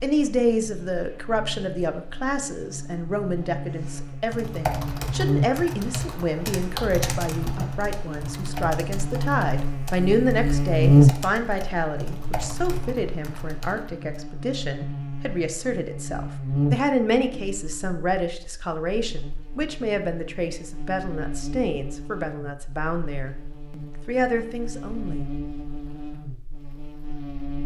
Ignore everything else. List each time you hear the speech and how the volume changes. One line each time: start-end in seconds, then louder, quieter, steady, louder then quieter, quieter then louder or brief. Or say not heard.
0.0-25.3 steady.